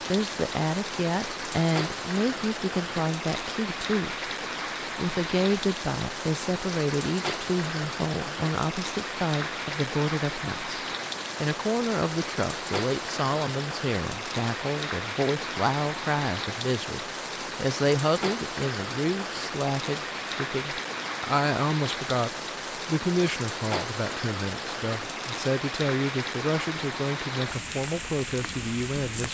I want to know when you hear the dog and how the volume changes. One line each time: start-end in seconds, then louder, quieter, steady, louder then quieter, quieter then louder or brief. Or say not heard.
not heard.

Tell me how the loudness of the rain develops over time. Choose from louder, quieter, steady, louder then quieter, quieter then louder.
steady.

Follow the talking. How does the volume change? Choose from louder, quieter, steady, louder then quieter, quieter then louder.
steady.